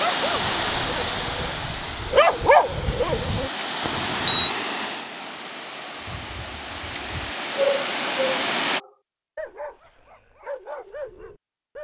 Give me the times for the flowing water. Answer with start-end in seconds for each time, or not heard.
0.0-8.8.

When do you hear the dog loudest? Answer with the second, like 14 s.
2 s.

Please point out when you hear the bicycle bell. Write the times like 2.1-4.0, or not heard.
3.9-4.5.